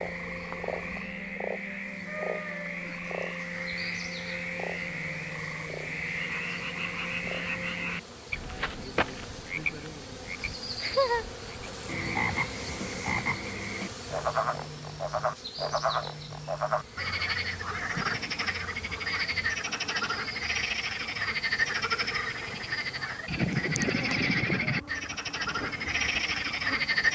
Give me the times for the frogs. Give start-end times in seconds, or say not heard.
0.0-27.0.